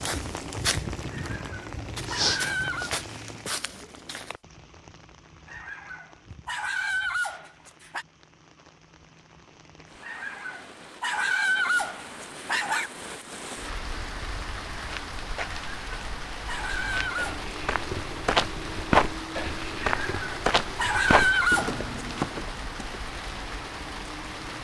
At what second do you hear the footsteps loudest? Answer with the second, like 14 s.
19 s.